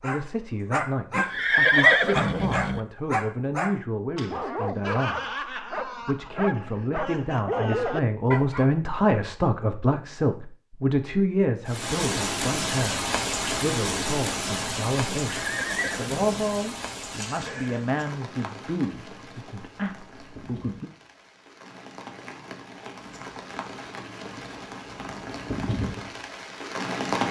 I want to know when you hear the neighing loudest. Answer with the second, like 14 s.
2 s.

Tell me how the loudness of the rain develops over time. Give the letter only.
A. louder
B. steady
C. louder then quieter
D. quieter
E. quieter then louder
E.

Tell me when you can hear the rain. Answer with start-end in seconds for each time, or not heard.
11.7-27.2.